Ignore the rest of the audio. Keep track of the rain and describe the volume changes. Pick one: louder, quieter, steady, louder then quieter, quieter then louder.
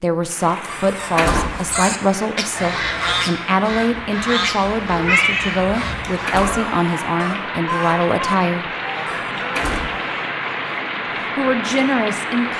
louder.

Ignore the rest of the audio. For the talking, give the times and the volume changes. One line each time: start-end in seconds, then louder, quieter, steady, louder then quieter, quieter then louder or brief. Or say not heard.
0.0-8.7 steady
11.3-12.5 brief.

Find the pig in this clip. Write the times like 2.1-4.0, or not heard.
not heard.